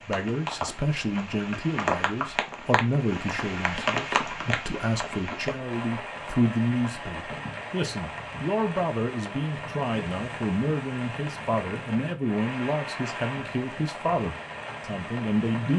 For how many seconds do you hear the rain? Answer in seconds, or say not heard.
16 s.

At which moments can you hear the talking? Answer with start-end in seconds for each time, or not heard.
0.0-15.7.